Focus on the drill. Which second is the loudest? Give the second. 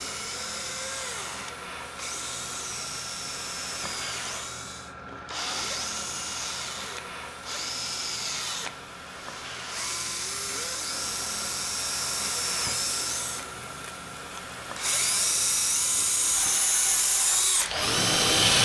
18 s.